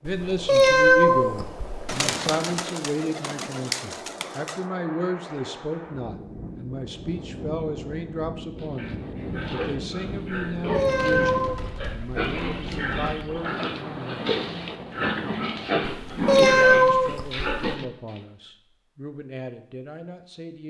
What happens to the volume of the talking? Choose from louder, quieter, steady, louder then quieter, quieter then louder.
quieter.